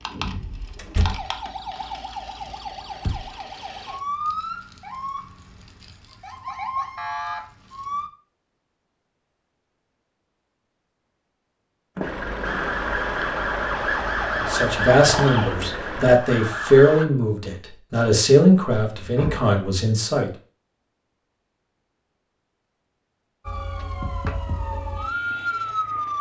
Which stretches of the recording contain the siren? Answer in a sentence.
The siren can be heard from 0.0 to 8.1 s, from 12.4 to 17.1 s and from 23.4 to 26.1 s.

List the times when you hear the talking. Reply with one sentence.
The talking can be heard from 14.4 to 20.3 s.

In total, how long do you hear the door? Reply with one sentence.
The door can be heard for 2 seconds in total.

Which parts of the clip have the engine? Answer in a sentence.
The engine can be heard from 12.0 to 16.2 s.